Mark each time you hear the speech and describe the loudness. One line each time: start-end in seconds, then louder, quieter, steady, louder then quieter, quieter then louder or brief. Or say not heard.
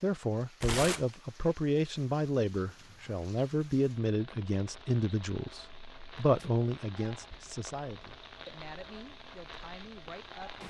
0.0-10.6 quieter.